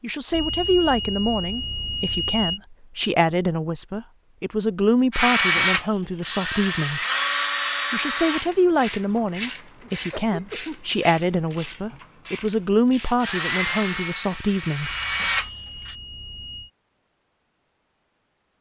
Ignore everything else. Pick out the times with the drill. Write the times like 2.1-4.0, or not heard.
5.1-8.5, 13.2-15.9.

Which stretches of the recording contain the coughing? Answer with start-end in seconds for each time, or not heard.
9.8-10.9.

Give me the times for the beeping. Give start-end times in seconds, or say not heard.
0.3-2.6, 14.8-16.7.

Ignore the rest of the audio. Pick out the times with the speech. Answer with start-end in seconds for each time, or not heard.
0.0-7.0, 7.9-14.9.